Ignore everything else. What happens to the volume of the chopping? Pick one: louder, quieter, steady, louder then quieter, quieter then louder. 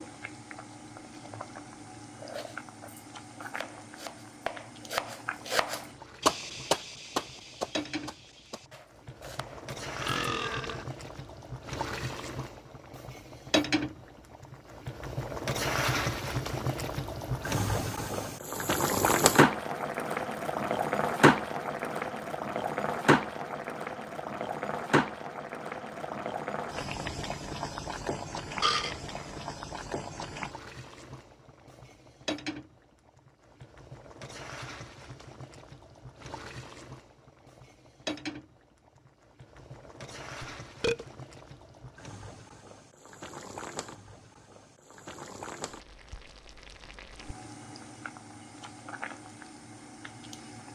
louder then quieter.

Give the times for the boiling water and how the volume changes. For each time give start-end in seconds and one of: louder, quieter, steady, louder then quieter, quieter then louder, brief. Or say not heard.
0.0-50.7 louder then quieter.